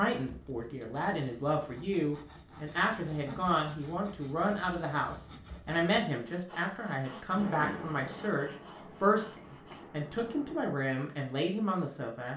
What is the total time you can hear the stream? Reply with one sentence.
You can't hear the stream here.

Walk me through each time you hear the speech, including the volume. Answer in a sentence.
The speech can be heard from 0.0 to 12.3 s, at a steady volume.